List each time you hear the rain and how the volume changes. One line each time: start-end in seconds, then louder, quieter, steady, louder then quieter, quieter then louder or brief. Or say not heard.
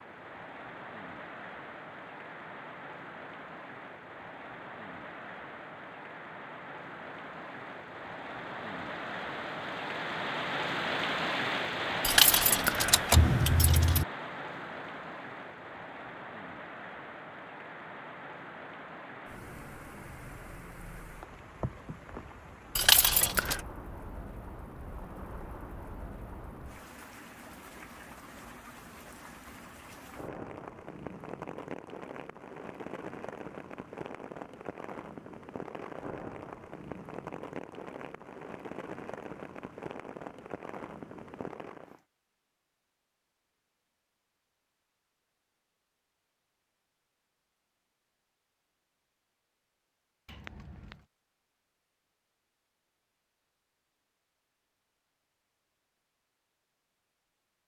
0.0-42.0 louder then quieter.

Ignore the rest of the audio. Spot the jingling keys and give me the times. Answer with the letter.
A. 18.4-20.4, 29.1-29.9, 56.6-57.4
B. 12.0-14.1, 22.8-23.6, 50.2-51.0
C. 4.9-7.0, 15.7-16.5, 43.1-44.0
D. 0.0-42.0
B.